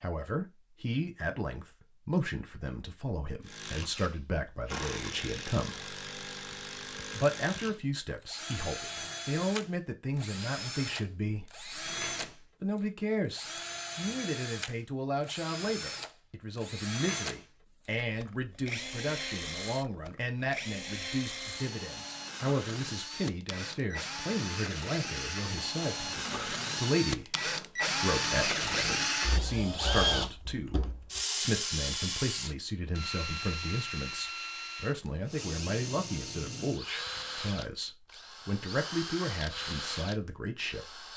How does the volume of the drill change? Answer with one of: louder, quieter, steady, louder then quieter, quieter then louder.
louder then quieter.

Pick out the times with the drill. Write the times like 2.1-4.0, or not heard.
3.4-41.1.